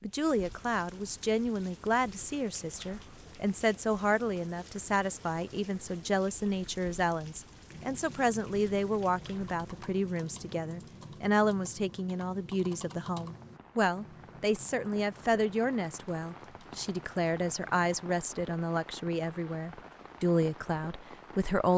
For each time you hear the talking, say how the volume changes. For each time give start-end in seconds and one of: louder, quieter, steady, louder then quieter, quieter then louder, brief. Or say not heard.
0.0-21.7 steady.